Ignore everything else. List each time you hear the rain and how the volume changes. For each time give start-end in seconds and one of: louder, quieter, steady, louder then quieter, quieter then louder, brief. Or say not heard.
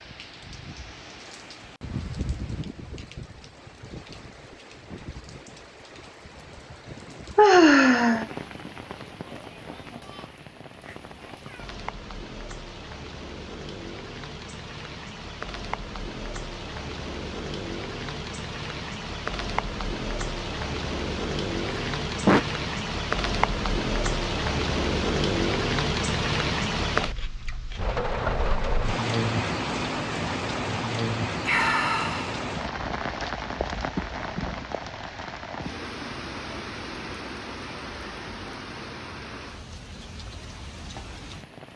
0.0-41.7 louder then quieter.